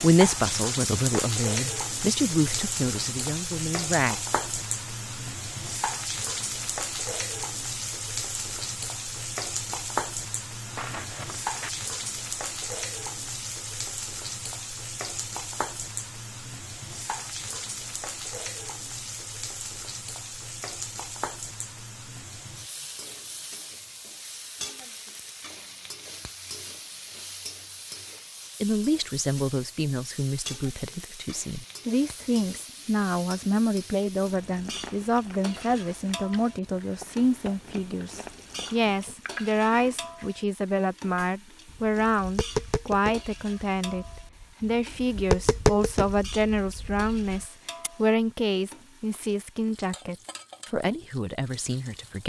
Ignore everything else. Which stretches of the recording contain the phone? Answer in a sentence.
You can hear the phone from 10.7 to 11.7 s.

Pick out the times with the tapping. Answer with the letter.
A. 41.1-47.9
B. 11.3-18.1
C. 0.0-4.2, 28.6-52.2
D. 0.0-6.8
A.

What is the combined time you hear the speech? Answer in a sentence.
You can hear the speech for 28 seconds altogether.